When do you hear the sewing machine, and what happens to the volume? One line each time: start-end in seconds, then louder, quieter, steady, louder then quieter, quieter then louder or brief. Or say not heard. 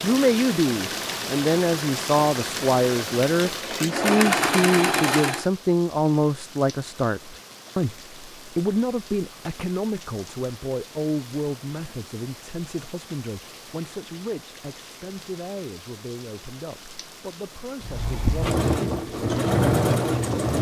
0.0-5.5 louder
17.8-20.5 brief.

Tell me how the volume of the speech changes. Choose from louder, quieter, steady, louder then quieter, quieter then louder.
quieter.